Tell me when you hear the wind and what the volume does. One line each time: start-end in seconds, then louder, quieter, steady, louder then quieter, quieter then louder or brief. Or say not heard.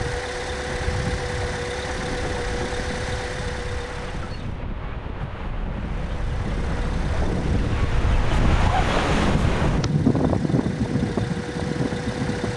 0.0-12.5 louder.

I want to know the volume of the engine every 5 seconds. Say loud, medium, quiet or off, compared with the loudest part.
loud, medium, loud.